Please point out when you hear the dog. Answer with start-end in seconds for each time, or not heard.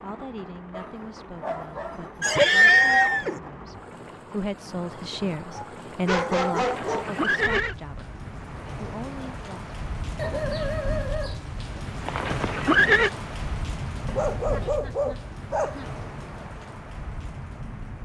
0.7-2.5, 5.5-7.2, 10.2-11.8, 14.1-15.9.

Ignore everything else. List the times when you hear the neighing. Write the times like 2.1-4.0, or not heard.
2.2-3.4, 6.5-7.8, 12.1-13.1.